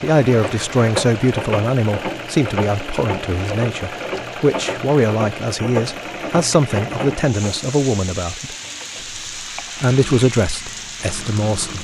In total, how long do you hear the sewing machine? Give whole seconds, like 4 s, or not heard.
12 s.